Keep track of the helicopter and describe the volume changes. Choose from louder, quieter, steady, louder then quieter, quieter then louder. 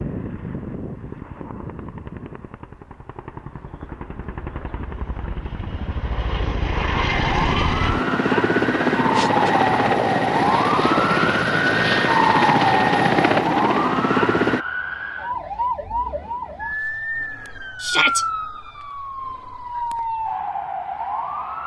louder.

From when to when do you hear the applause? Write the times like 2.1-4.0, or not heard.
not heard.